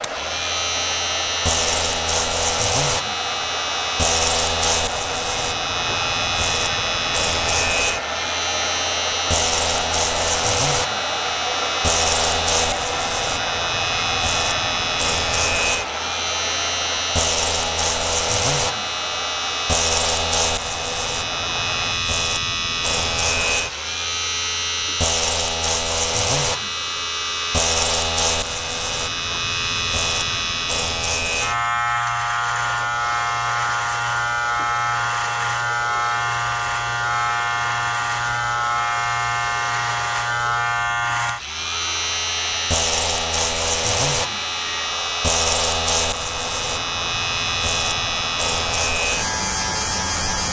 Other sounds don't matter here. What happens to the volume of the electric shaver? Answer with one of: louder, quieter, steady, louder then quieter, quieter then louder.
steady.